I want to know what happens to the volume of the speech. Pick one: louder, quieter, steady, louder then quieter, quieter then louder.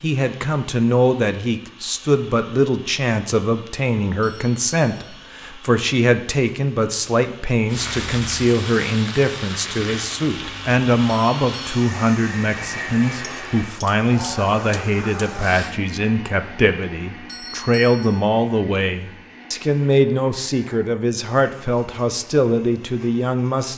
steady.